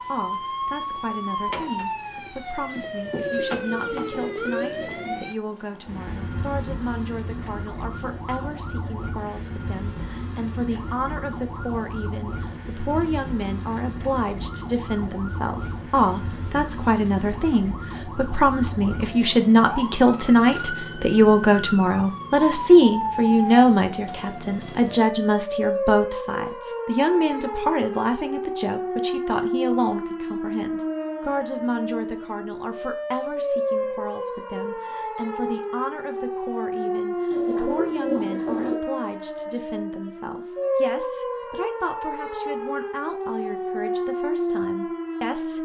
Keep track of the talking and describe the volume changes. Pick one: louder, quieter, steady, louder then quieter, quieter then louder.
louder then quieter.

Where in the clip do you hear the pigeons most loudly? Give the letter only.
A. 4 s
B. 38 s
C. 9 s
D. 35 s
B.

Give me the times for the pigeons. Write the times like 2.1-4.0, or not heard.
3.2-5.2, 37.3-38.8.